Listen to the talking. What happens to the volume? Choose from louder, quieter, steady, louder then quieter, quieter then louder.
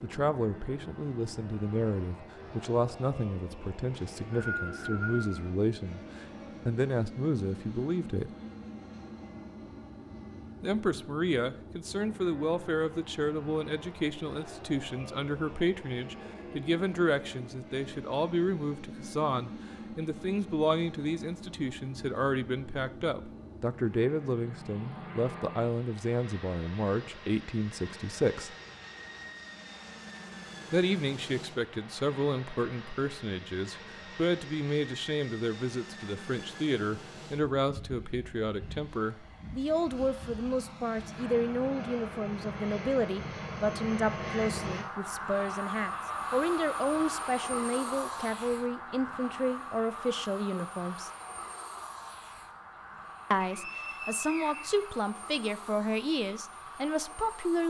steady.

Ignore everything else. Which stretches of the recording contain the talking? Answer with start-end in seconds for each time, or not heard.
0.0-8.3, 10.6-28.5, 30.7-51.1, 53.3-57.6.